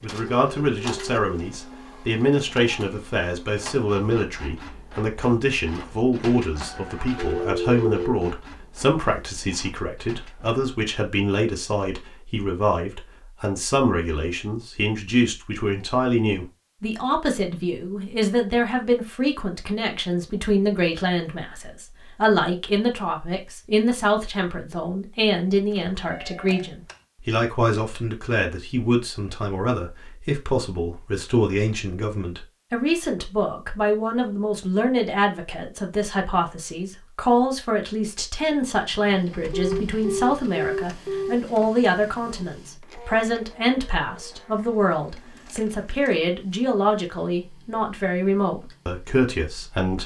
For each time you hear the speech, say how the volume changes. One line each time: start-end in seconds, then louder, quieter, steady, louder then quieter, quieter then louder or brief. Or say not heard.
0.0-50.0 steady.